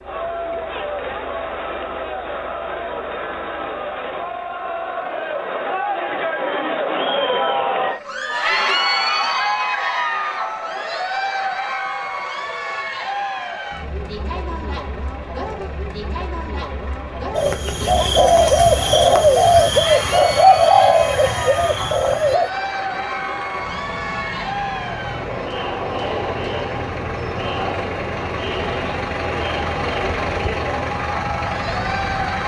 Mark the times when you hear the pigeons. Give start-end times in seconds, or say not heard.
17.4-22.5.